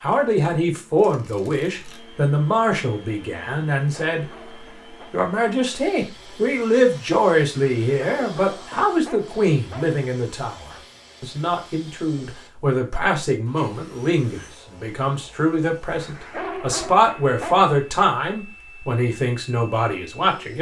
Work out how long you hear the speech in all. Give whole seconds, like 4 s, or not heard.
20 s.